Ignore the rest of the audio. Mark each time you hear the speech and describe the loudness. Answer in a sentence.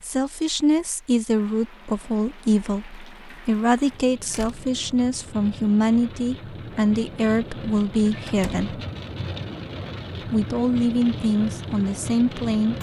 You can hear the speech from 0.0 to 8.8 s, at a steady volume; and briefly from 10.2 to 12.7 s.